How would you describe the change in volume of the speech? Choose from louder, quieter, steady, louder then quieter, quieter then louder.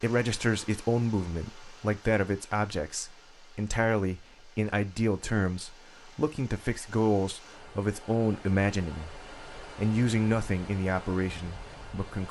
steady.